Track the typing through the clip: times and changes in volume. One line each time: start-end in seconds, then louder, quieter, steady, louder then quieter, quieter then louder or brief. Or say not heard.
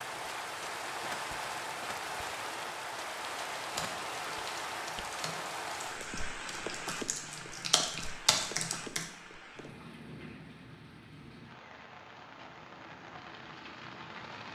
3.6-9.1 louder.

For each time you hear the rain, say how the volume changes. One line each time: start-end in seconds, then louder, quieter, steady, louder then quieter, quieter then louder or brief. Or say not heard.
0.0-14.5 quieter.